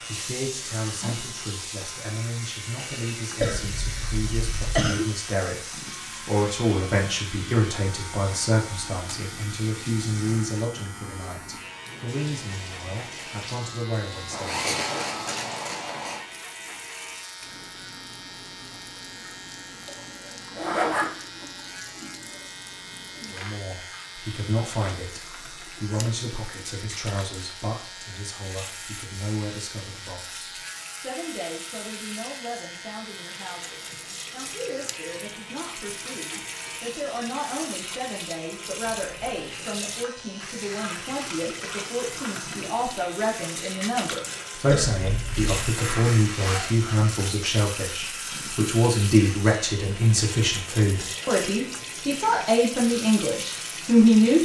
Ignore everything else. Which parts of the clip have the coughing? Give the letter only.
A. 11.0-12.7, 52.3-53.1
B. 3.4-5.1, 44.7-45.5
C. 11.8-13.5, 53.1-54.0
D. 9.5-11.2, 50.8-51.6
B.